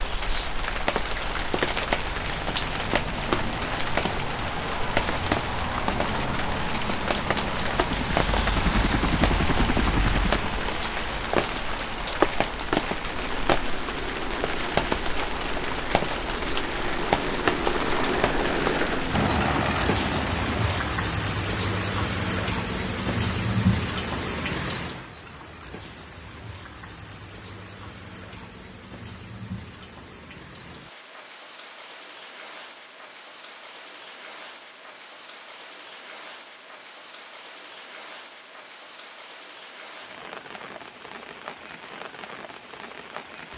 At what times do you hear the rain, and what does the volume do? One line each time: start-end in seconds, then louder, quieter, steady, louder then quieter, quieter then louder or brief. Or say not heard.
0.0-43.5 quieter.